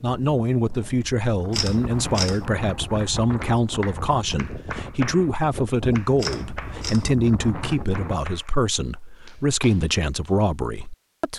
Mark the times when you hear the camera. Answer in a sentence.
You can hear the camera from 1.5 to 2.5 s and from 6.2 to 7.2 s.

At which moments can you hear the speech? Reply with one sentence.
The speech can be heard from 0.0 to 11.3 s.